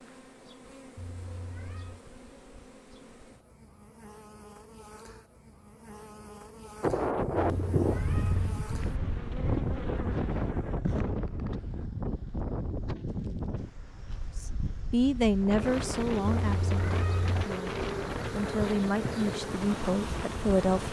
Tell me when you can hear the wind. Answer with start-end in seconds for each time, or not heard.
6.8-20.8.